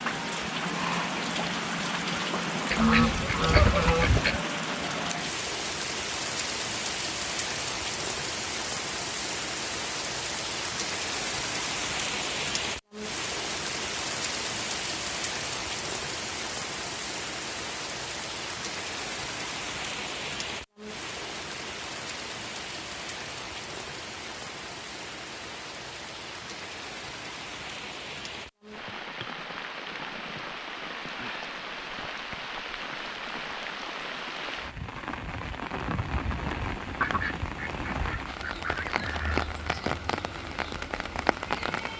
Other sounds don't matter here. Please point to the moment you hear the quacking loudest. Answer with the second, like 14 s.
4 s.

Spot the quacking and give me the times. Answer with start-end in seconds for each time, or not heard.
2.7-4.4, 36.9-39.5.